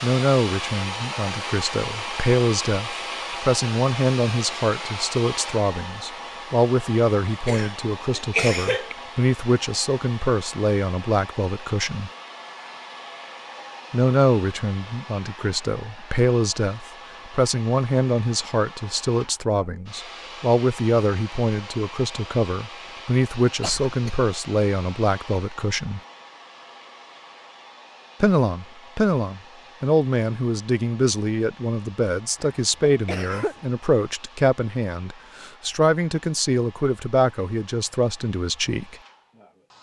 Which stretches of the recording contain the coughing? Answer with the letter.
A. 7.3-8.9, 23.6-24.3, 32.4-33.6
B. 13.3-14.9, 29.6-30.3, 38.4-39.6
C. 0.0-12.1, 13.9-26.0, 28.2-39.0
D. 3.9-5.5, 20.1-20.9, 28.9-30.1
A.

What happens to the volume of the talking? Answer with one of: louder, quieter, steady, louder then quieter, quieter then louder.
steady.